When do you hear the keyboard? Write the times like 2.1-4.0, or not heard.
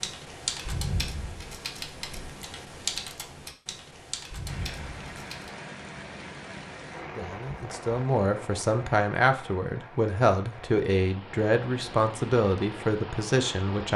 0.0-5.5.